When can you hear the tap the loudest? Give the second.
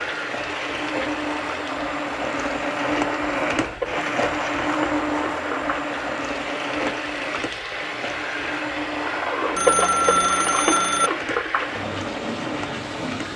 10 s.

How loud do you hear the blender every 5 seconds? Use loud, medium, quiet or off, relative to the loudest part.
loud, loud, medium.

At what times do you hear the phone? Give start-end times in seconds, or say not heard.
9.6-11.1.